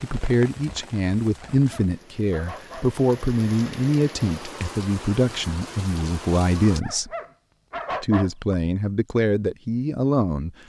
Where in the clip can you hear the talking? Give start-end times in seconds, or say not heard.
0.0-7.1, 8.0-10.5.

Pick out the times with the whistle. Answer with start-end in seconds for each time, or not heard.
not heard.